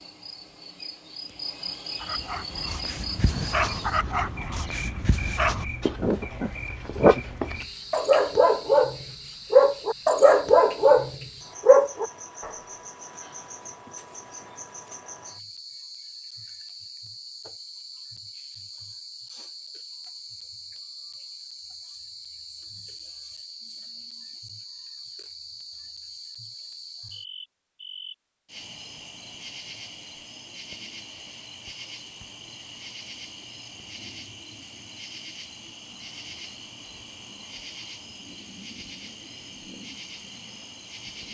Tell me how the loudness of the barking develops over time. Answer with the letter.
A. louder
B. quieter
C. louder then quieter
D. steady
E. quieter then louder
A.